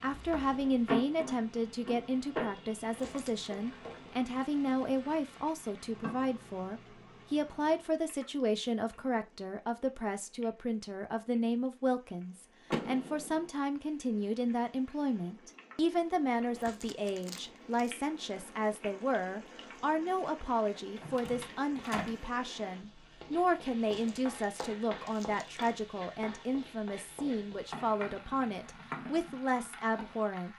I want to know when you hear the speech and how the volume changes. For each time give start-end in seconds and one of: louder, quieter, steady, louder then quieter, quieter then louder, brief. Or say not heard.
0.0-30.5 steady.